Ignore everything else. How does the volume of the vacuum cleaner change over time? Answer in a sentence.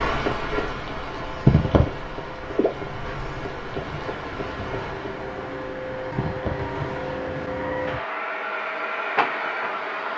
The loudness of the vacuum cleaner goes up.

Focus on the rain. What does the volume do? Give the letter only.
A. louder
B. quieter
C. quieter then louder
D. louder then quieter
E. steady
B.